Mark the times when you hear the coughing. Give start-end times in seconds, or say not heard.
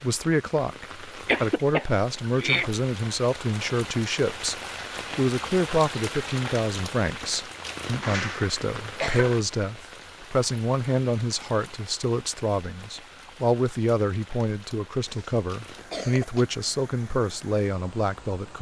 1.2-2.7, 8.0-9.4, 15.0-16.4.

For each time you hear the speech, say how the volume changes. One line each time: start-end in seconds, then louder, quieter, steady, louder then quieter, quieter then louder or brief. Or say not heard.
0.0-18.5 steady.